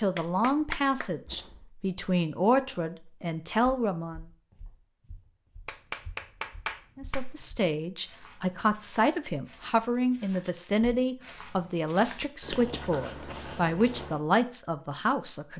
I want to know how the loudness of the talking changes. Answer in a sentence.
The loudness of the talking stays about the same.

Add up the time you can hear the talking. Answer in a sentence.
You can hear the talking for 13 seconds altogether.